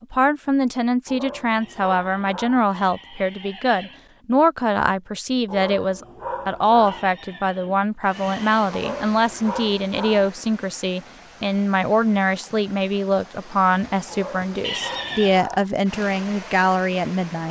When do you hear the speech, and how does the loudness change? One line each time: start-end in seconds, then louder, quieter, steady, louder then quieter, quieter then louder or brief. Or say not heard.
0.0-17.4 steady.